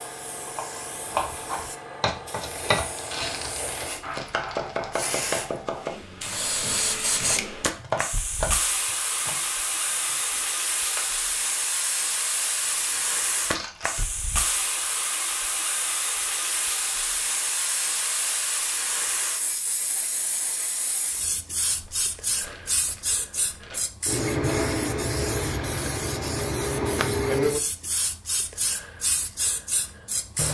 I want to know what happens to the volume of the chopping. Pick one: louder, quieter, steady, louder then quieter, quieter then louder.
quieter.